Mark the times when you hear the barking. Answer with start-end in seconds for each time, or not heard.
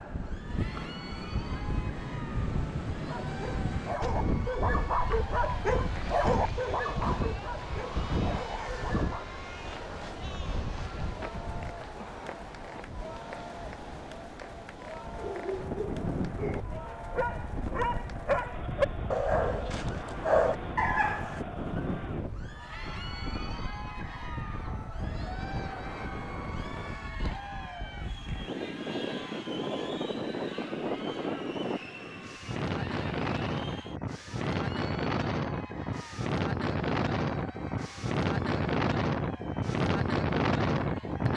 3.0-9.2, 15.2-21.4.